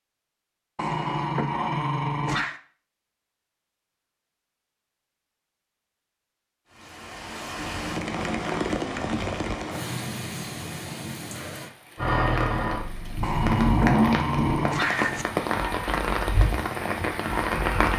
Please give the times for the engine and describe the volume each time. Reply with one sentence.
You can hear the engine from 11.9 to 17.9 s, getting louder then quieter.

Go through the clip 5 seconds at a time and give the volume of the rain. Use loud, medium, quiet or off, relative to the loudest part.
off, loud, medium, loud.